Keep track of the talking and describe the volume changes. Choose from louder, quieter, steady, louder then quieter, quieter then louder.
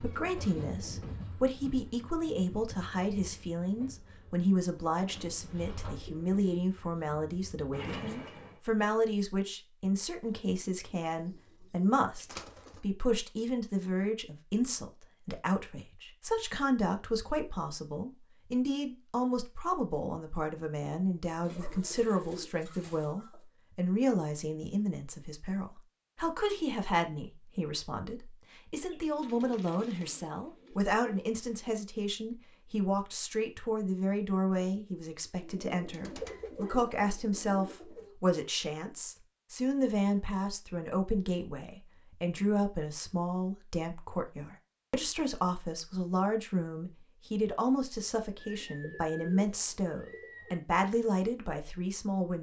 steady.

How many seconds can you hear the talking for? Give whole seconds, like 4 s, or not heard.
52 s.